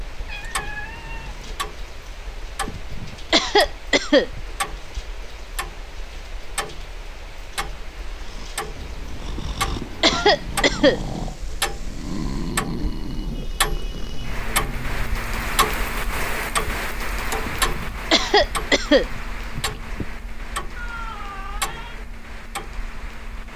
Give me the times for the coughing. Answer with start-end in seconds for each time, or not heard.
2.6-4.4, 9.3-11.1, 17.4-20.1.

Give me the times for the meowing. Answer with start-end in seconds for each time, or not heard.
0.2-1.6, 8.8-10.3, 20.8-22.0.